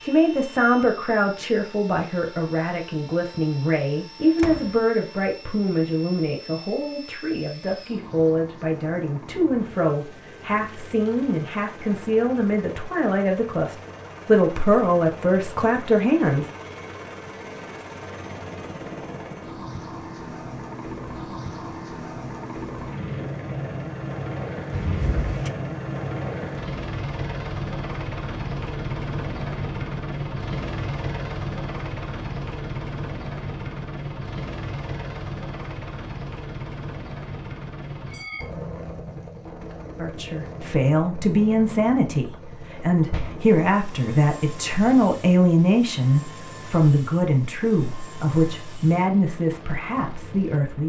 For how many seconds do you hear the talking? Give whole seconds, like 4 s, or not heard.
27 s.